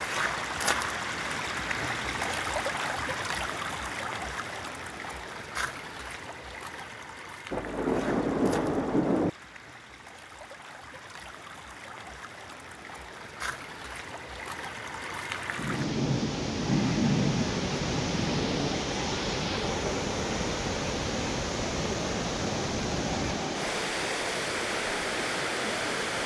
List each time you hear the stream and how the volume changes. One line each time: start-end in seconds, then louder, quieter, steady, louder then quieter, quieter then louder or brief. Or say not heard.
0.0-26.2 quieter then louder.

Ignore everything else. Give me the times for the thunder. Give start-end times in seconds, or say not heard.
7.5-9.3, 15.6-18.9.